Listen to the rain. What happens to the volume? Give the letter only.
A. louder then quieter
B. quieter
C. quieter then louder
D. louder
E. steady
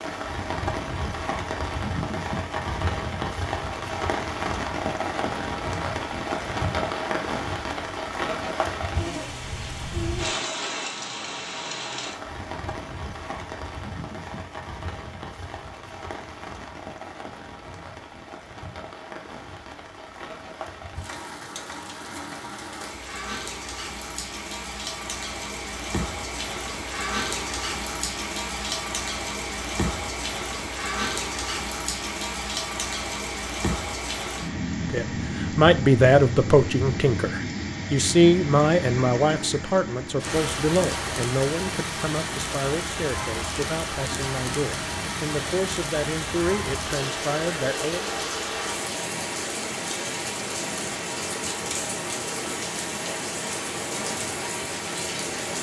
C.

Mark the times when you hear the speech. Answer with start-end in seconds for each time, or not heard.
34.9-48.1.